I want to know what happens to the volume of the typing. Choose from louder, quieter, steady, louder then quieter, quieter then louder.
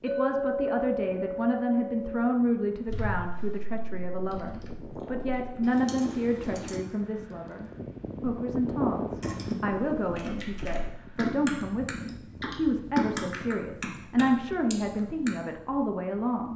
louder.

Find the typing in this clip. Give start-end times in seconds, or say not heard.
2.9-6.8, 9.2-15.3.